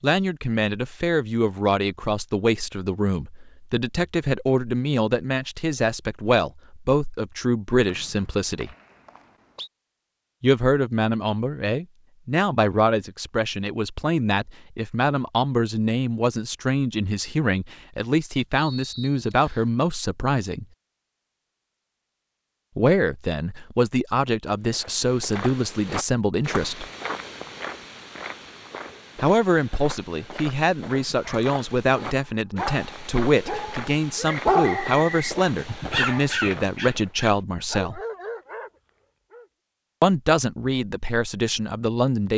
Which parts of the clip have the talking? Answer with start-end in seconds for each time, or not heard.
0.0-8.8, 10.4-20.6, 22.8-26.9, 29.1-38.0, 40.0-42.3.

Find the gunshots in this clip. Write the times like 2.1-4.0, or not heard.
not heard.